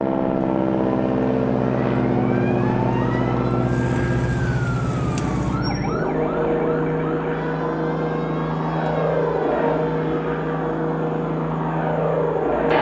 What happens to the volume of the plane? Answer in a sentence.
The volume of the plane stays about the same.